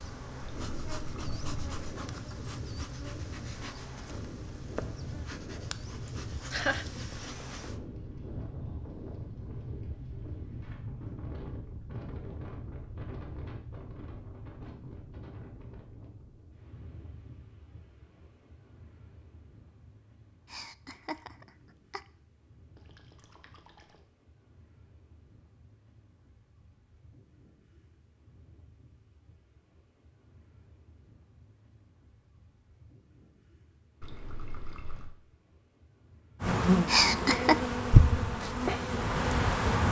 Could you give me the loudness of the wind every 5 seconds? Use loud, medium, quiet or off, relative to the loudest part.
loud, loud, loud, medium, quiet, quiet, quiet, quiet.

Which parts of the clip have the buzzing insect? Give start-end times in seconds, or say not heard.
0.0-7.8, 36.4-39.8.